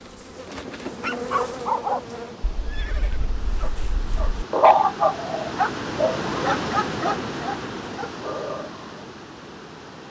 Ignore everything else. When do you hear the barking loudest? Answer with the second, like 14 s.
5 s.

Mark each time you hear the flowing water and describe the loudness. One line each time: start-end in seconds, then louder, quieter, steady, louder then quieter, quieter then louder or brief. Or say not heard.
0.2-10.0 louder then quieter.